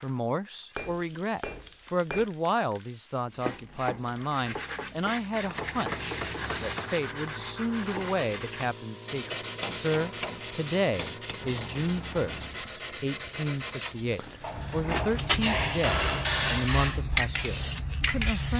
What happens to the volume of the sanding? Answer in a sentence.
The loudness of the sanding stays about the same.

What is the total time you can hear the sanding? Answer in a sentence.
You can hear the sanding for 12 seconds altogether.